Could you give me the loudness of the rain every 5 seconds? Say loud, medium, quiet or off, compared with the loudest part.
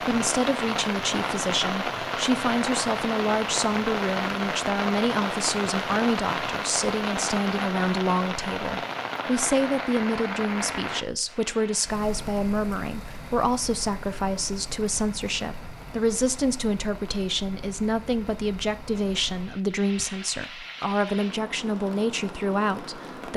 loud, loud, medium, quiet, medium.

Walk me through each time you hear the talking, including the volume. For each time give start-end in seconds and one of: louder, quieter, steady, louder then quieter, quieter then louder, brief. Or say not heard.
0.0-23.3 steady.